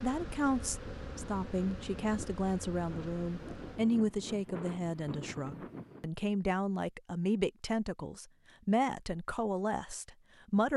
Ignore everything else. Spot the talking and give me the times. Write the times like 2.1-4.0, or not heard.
0.0-10.7.